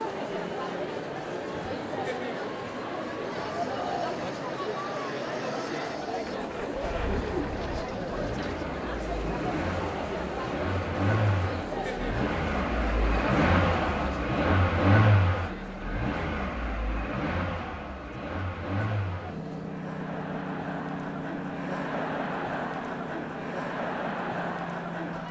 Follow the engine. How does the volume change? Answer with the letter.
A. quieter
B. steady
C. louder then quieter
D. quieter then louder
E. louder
C.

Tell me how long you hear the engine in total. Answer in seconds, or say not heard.
25 s.